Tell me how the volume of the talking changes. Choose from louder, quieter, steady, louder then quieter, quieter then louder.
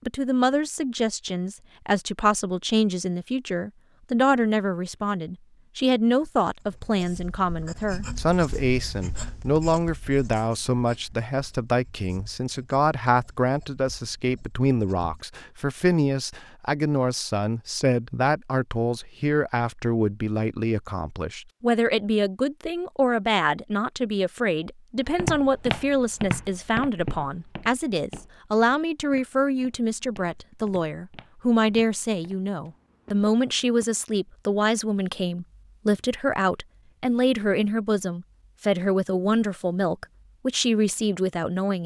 steady.